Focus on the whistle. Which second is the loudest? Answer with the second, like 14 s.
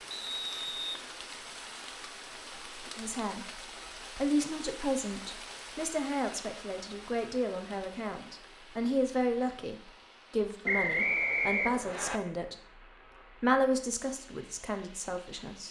11 s.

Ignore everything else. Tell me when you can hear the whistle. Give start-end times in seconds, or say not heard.
0.1-1.0, 10.7-12.2.